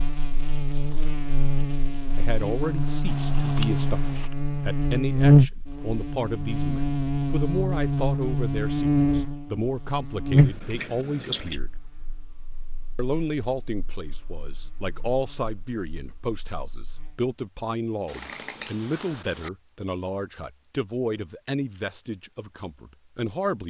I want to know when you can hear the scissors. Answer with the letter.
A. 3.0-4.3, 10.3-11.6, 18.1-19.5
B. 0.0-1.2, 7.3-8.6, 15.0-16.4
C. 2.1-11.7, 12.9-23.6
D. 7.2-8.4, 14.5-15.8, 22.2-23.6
A.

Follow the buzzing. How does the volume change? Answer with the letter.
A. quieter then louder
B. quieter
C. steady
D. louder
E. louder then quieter
E.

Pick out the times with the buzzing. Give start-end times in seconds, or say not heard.
0.0-17.4.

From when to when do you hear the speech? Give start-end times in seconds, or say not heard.
2.1-11.7, 12.9-23.6.